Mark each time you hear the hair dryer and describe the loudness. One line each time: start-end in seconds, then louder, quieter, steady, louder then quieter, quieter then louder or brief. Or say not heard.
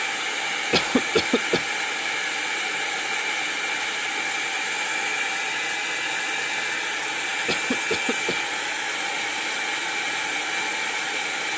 0.0-11.5 steady.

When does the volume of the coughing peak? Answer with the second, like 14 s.
1 s.